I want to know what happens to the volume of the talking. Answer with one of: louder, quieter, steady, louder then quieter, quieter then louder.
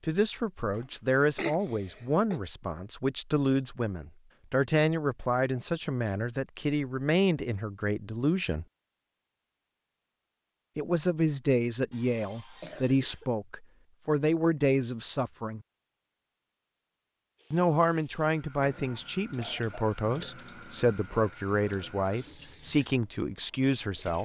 steady.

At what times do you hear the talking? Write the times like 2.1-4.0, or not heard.
0.0-8.7, 10.8-15.6, 17.5-24.2.